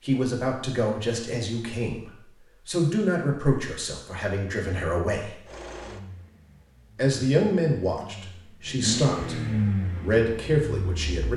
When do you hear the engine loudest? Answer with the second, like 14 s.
9 s.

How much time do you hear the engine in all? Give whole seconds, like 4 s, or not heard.
6 s.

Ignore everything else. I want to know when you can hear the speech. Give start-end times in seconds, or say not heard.
0.0-5.3, 7.0-11.3.